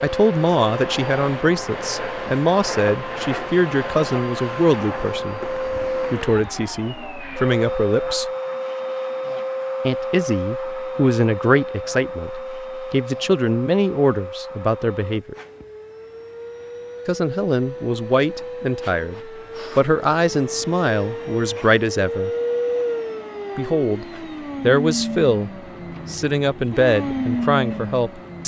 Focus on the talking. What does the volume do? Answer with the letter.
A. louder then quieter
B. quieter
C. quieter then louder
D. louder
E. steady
E.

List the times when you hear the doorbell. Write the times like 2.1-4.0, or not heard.
not heard.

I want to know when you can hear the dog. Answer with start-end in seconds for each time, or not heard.
not heard.